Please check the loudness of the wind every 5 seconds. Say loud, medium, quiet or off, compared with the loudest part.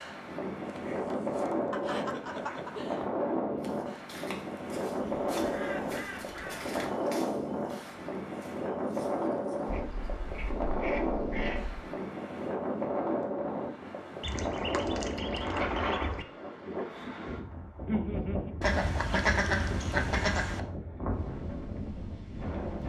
loud, loud, loud, loud, medium.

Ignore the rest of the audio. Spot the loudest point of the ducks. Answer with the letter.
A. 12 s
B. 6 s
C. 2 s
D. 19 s
D.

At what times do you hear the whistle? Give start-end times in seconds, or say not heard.
not heard.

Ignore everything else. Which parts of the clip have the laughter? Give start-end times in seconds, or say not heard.
1.7-3.1, 17.9-18.5.